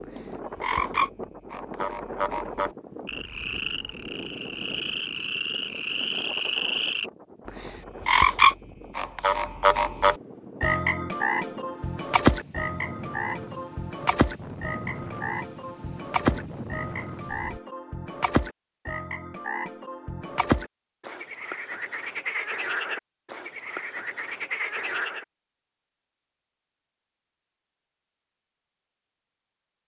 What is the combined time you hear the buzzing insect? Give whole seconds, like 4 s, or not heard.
not heard.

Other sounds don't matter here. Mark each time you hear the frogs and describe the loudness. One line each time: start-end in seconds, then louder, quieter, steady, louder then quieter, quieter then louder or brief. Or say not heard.
0.0-25.2 louder then quieter.